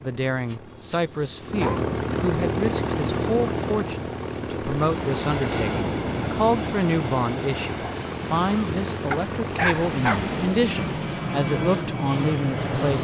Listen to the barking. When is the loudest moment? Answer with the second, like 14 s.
10 s.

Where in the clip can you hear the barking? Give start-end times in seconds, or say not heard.
0.5-1.8, 9.1-10.3.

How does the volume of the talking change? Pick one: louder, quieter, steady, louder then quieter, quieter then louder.
steady.